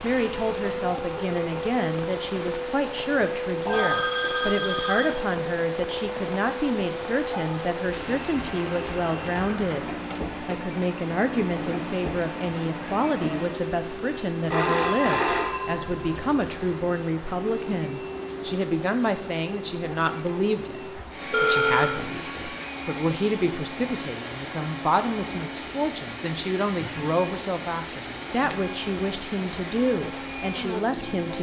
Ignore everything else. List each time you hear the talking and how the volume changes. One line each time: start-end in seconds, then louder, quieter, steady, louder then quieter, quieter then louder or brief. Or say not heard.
0.0-31.3 steady.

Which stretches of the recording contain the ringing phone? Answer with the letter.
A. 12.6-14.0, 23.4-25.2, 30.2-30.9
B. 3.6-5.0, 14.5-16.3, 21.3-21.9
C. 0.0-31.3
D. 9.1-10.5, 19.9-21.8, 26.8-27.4
B.